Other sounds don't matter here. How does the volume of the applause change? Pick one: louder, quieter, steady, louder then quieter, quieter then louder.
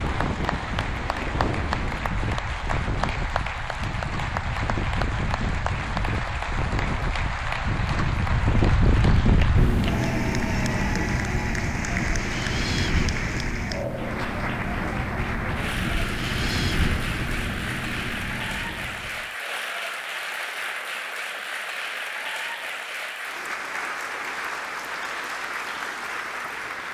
steady.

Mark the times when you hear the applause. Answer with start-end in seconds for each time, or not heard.
0.0-26.8.